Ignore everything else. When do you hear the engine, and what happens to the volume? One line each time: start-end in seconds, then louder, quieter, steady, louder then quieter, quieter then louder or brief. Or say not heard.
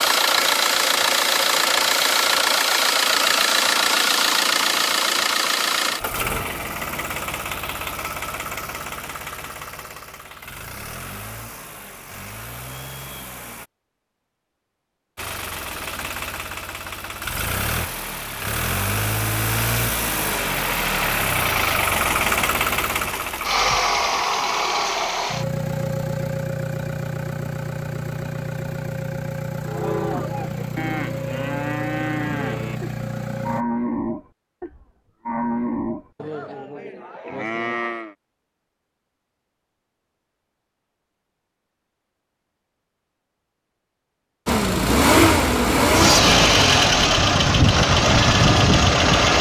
0.0-13.7 quieter
15.2-33.6 louder then quieter
44.5-49.3 steady.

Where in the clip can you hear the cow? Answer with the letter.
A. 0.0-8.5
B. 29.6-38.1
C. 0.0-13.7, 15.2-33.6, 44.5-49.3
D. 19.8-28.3
B.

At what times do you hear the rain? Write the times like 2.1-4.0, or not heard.
not heard.